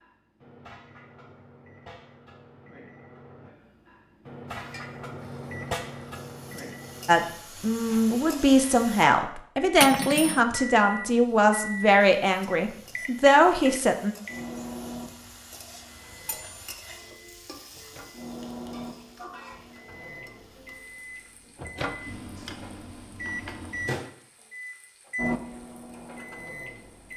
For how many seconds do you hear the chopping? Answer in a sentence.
You can't hear the chopping here.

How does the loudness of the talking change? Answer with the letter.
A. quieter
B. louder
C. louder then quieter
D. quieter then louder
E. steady
E.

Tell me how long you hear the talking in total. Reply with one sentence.
You can hear the talking for 7 seconds altogether.